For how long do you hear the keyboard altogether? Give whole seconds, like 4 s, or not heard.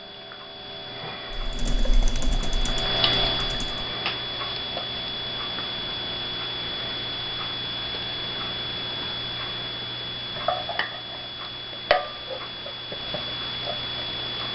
3 s.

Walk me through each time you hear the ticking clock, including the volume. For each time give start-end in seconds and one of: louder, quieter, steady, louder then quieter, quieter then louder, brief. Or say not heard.
0.0-14.5 steady.